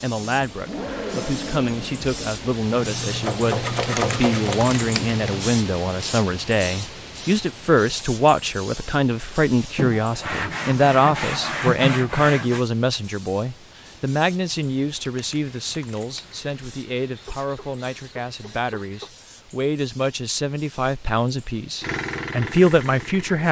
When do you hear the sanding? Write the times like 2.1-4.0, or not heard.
2.7-5.5, 9.8-12.7, 16.2-19.1.